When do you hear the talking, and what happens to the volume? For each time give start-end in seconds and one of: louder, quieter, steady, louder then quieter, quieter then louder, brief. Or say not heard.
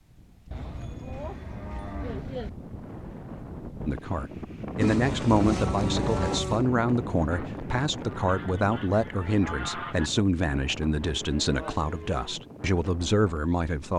3.9-13.9 steady.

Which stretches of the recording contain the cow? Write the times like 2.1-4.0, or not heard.
0.5-2.5, 4.8-6.7, 10.5-12.4.